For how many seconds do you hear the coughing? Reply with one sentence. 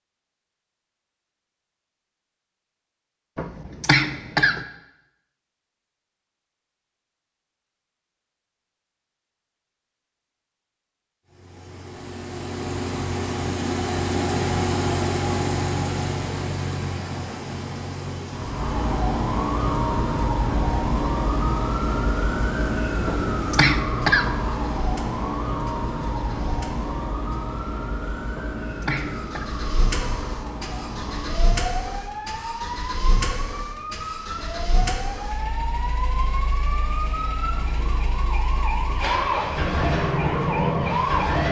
The coughing can be heard for 4 seconds in total.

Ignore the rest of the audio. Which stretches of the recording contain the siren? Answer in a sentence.
You can hear the siren from 18.3 to 41.4 s.